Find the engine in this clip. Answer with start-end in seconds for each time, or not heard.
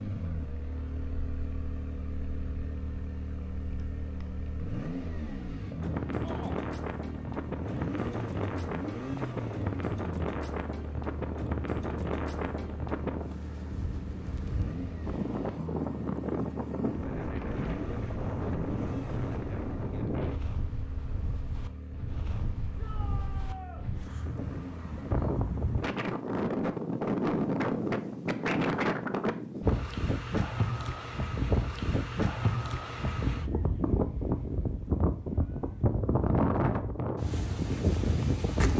0.0-25.2.